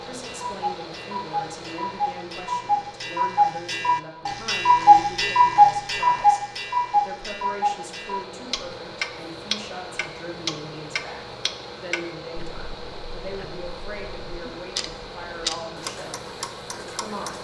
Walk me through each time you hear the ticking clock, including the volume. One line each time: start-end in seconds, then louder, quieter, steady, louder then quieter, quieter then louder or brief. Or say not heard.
0.1-17.4 louder then quieter.